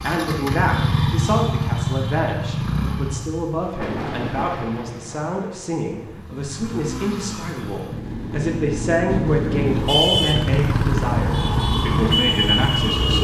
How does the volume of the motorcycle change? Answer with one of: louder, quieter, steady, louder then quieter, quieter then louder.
quieter then louder.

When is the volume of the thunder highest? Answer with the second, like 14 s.
4 s.